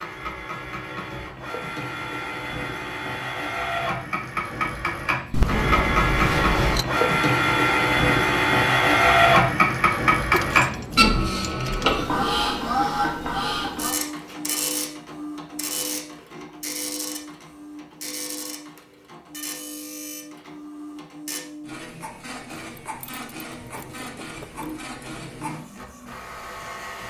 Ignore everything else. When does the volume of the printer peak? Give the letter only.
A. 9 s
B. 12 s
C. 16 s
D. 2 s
A.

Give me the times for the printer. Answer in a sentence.
You can hear the printer from 0.0 to 27.0 s.